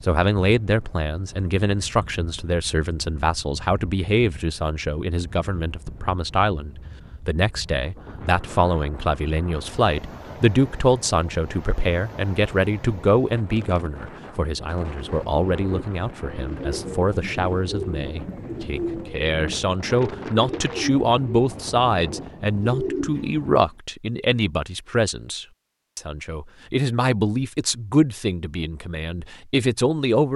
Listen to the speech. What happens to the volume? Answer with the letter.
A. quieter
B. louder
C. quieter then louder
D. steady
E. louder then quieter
D.